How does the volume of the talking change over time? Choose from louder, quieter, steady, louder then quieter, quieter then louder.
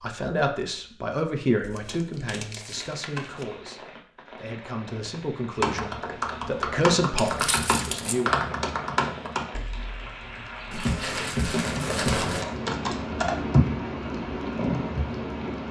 quieter then louder.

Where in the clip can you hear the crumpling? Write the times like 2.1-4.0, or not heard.
1.6-3.5, 7.2-8.2, 10.7-12.4.